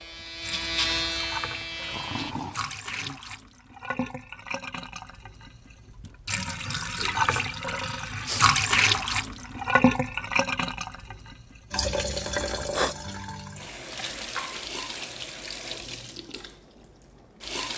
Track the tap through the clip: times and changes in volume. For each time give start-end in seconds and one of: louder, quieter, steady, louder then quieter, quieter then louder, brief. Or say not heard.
0.0-17.7 louder then quieter.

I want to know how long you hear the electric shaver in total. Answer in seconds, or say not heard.
2 s.